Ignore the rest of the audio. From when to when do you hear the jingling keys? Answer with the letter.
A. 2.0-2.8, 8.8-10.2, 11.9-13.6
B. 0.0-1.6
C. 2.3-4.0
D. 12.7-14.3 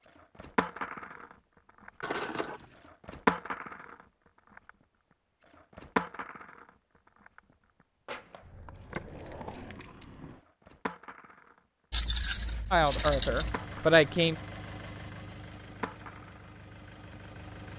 A.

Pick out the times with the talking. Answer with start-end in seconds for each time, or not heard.
12.7-14.3.